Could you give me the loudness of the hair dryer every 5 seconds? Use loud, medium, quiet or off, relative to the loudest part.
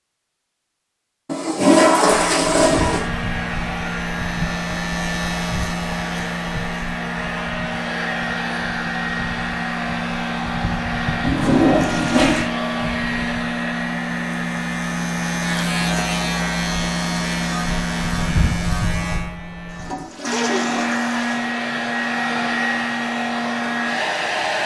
medium, medium, loud, medium, loud.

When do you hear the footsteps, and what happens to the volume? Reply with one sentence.
You can't hear the footsteps here.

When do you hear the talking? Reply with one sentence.
The talking can't be heard in this clip.